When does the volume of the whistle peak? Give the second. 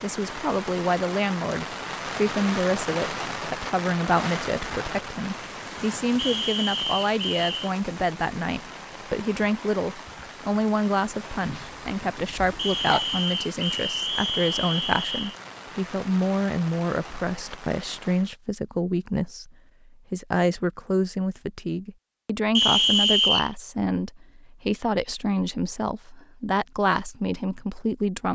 23 s.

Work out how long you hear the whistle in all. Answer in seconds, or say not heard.
5 s.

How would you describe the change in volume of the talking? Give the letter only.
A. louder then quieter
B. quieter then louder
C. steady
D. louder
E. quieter
C.